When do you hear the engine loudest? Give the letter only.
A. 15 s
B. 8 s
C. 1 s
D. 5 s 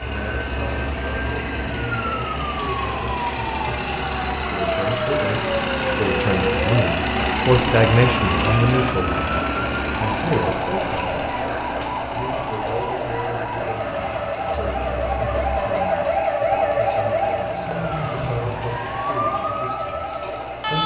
B.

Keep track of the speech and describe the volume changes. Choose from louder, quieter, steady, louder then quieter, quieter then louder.
louder then quieter.